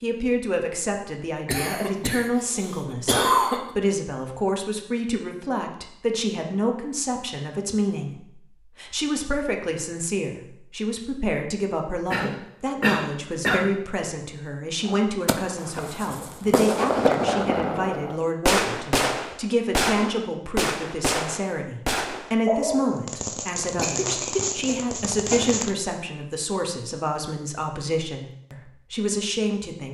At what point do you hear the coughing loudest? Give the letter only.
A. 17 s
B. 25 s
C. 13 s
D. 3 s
D.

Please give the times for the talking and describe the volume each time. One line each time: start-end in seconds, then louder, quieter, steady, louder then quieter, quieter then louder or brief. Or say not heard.
0.0-29.8 steady.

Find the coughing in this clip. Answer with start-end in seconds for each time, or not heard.
1.4-3.6, 12.1-13.7, 23.8-25.6.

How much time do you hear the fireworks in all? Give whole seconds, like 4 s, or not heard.
11 s.